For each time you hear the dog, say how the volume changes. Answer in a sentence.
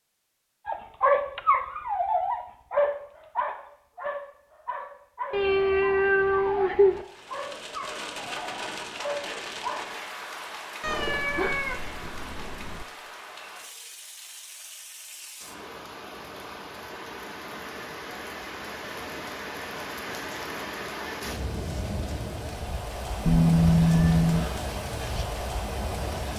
You can hear the dog from 0.7 to 9.9 s, getting quieter.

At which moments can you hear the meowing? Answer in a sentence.
The meowing can be heard from 5.3 to 7.0 s, from 10.8 to 12.8 s and from 23.2 to 24.4 s.